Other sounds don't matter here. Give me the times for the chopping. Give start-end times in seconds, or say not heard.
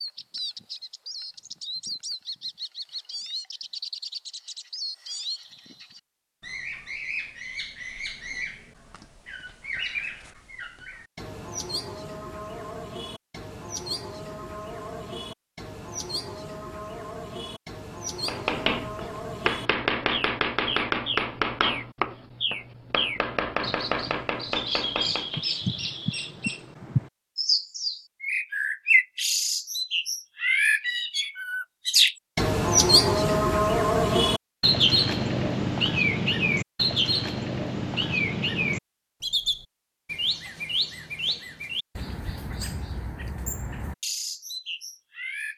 18.2-25.4.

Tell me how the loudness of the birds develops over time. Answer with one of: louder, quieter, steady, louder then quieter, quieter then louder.
louder then quieter.